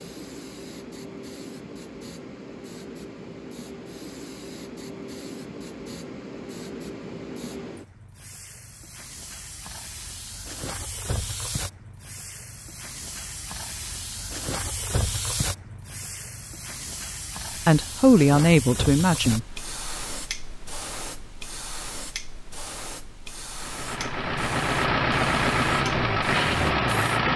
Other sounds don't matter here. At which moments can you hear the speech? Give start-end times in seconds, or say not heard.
17.6-19.4.